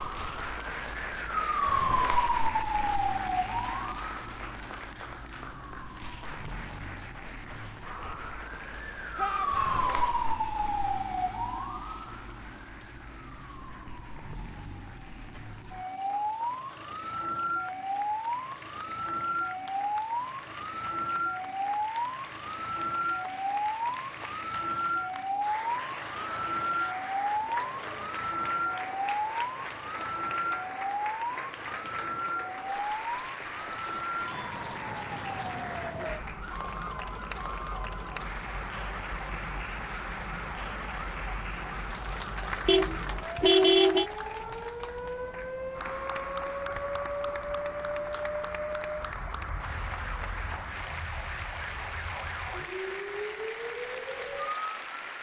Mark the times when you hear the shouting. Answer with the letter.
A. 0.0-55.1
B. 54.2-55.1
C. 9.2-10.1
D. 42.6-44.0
C.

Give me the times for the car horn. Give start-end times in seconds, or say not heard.
42.6-44.0.